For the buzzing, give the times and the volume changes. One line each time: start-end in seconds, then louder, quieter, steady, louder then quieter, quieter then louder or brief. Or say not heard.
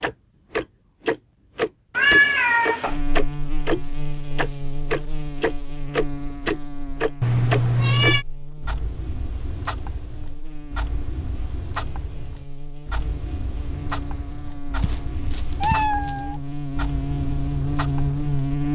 2.9-18.6 quieter then louder.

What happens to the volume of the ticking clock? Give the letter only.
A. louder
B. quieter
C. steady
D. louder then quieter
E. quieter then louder
B.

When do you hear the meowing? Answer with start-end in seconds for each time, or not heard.
1.9-3.0, 7.2-8.2, 14.8-16.4.